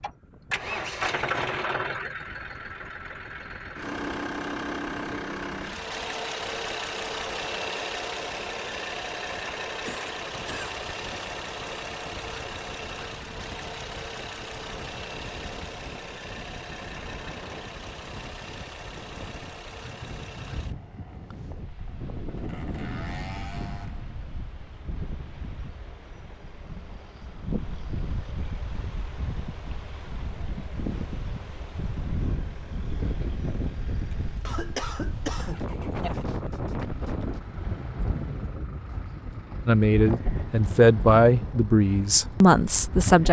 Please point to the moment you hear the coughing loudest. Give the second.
35 s.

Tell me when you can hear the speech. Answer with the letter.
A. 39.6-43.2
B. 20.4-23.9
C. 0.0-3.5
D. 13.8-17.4
A.